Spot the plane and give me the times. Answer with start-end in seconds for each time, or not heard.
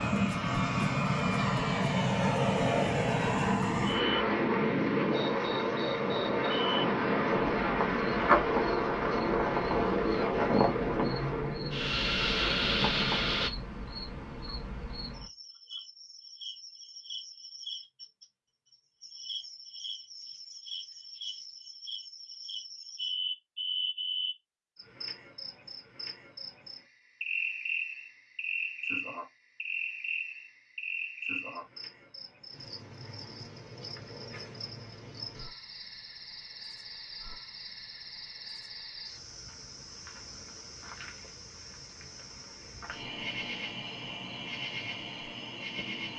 0.0-13.5.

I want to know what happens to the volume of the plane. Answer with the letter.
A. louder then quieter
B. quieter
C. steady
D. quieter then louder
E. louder
C.